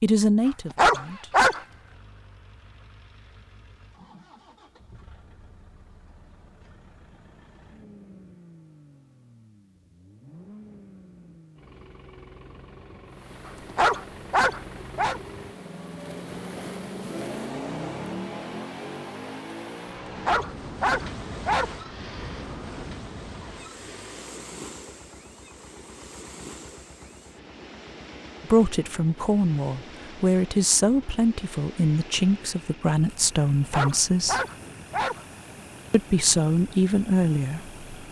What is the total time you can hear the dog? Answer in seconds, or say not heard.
6 s.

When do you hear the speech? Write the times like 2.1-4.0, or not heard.
0.0-1.3, 28.4-34.4, 35.9-37.8.